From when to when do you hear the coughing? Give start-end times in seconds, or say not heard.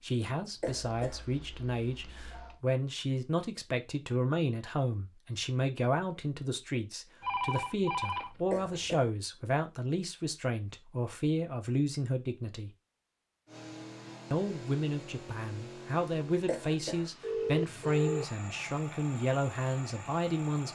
0.4-1.2, 8.1-9.1, 16.2-17.1.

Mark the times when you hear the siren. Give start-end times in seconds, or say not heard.
not heard.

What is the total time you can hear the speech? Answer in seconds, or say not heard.
19 s.